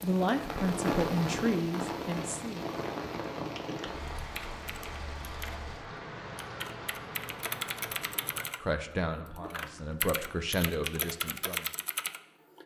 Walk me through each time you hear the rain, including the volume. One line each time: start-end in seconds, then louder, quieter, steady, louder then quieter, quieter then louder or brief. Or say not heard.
0.0-8.4 quieter.